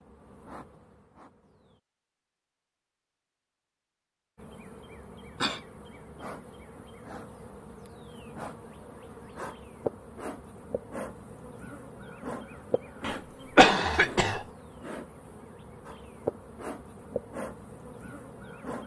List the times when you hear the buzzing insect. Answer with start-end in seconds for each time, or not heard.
0.0-1.8, 4.3-18.8.